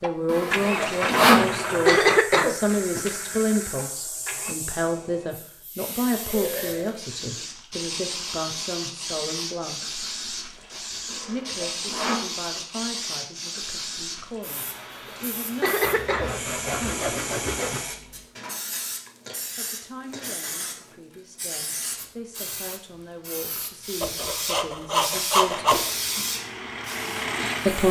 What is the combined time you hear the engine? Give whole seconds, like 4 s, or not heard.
7 s.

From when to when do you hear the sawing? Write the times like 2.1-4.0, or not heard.
0.2-1.6, 11.1-12.3, 15.8-17.8, 24.0-25.9.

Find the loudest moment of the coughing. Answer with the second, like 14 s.
2 s.